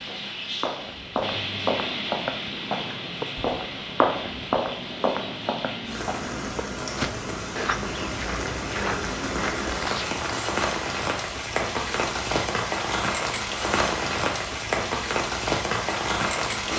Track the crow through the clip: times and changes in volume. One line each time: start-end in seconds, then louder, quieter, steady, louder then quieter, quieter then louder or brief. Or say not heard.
not heard.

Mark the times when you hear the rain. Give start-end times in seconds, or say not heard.
0.0-16.7.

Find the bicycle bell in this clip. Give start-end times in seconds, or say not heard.
not heard.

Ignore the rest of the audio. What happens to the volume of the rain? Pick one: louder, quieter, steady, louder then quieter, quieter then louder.
louder.